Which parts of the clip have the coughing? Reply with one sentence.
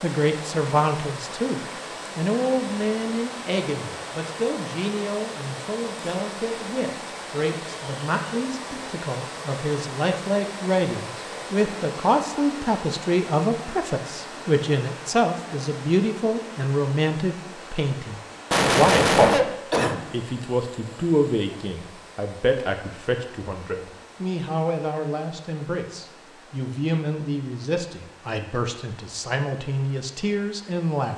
The coughing can be heard from 18.5 to 20.0 s.